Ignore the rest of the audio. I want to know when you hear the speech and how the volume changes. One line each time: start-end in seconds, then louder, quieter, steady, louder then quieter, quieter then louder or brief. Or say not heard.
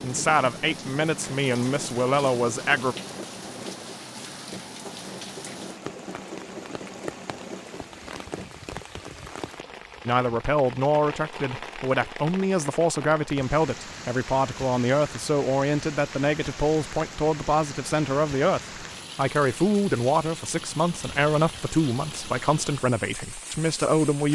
0.0-3.0 brief
10.1-24.3 steady.